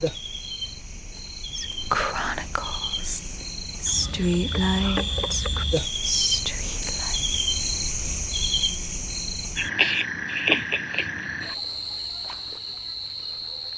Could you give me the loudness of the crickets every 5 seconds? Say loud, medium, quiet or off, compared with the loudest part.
medium, loud, loud.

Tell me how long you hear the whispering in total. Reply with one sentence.
The whispering can be heard for 6 seconds in total.